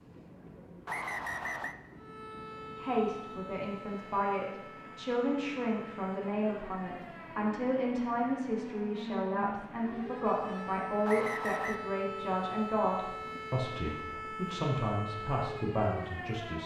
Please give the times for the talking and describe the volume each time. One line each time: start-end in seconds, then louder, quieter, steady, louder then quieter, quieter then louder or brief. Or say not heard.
2.8-16.6 steady.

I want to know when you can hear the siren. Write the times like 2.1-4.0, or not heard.
1.9-16.6.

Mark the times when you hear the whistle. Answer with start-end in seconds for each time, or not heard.
0.8-1.8, 11.1-11.8.